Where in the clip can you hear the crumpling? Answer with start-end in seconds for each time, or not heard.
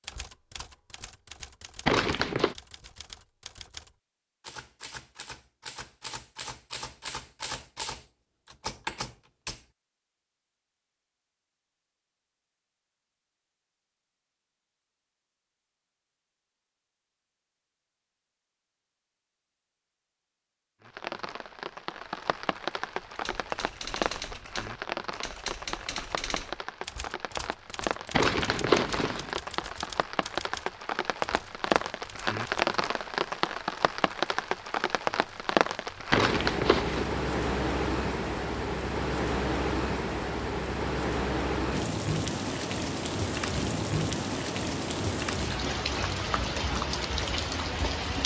1.9-2.5, 28.1-29.4, 36.1-37.1.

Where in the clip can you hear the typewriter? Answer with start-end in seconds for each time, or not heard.
0.0-9.7, 23.1-32.7.